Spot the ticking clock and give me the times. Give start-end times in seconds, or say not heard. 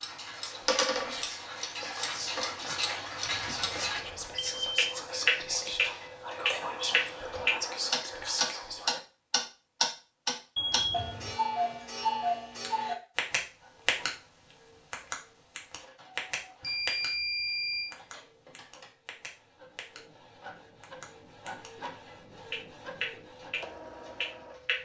0.0-14.1, 14.9-17.1, 17.9-20.0, 20.8-24.8.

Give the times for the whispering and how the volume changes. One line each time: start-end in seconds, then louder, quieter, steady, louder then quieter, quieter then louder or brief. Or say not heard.
0.3-9.0 louder.